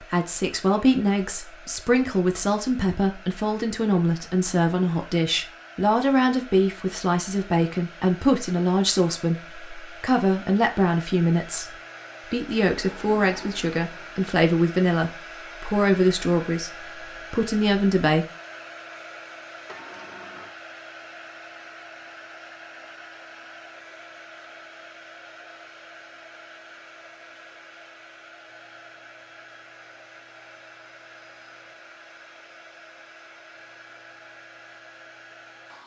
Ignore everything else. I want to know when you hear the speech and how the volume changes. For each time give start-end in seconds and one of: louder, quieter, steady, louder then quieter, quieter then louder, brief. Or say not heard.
0.0-18.2 steady.